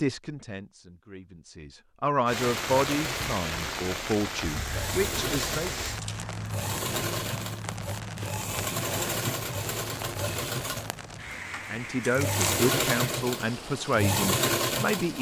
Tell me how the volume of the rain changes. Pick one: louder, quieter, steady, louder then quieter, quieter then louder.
quieter.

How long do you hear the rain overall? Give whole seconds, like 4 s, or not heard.
13 s.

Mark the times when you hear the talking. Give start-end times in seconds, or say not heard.
0.0-5.8, 11.7-15.1.